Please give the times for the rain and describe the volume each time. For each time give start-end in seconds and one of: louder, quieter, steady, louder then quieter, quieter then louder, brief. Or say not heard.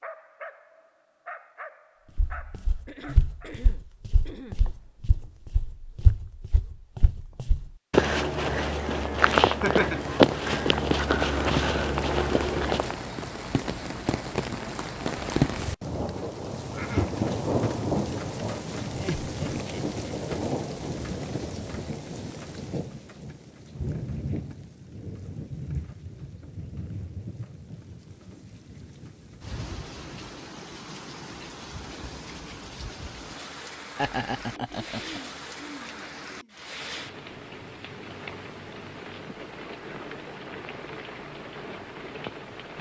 9.9-42.7 quieter.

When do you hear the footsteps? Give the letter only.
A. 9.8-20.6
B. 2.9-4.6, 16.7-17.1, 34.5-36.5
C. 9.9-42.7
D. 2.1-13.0
D.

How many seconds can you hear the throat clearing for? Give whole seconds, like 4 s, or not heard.
4 s.